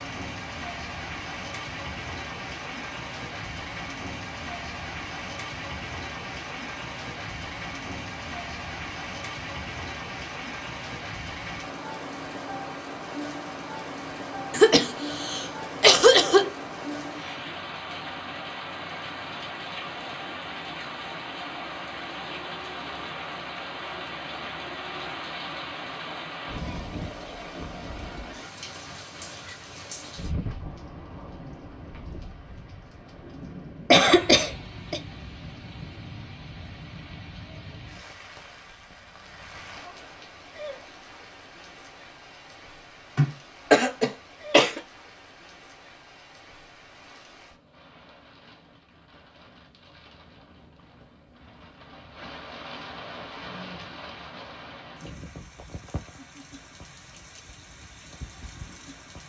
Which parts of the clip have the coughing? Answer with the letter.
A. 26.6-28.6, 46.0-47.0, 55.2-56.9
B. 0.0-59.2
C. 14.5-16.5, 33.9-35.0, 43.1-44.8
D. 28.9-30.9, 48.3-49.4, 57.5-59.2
C.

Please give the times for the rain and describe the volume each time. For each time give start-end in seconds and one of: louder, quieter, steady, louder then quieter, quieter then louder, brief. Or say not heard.
0.0-59.2 quieter.